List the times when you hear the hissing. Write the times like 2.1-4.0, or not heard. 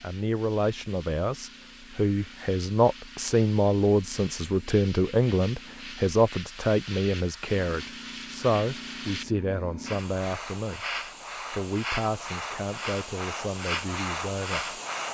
0.0-15.0.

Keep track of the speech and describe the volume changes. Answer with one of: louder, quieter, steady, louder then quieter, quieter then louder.
quieter.